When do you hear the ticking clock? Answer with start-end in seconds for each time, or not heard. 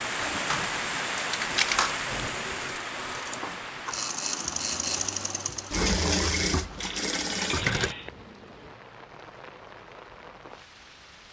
not heard.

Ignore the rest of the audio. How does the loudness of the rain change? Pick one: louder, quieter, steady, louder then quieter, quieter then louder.
quieter.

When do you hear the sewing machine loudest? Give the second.
6 s.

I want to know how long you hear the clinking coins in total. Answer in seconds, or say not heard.
3 s.